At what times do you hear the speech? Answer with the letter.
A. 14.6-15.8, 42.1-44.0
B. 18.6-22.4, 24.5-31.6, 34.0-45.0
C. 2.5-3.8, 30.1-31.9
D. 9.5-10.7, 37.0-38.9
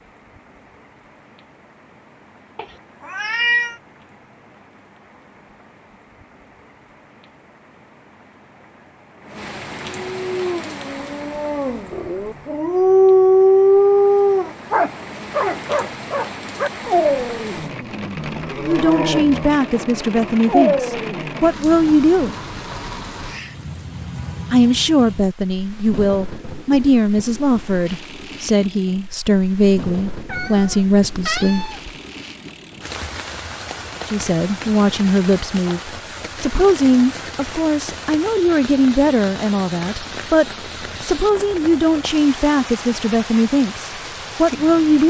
B.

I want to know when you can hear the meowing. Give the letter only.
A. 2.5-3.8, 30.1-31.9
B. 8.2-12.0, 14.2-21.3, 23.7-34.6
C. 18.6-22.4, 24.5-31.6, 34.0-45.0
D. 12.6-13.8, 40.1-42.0
A.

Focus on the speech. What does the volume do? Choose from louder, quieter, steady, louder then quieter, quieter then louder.
steady.